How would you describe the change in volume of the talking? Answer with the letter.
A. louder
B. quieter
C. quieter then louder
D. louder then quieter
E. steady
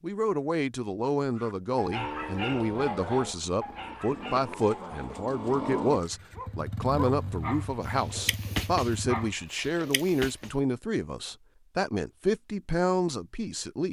E.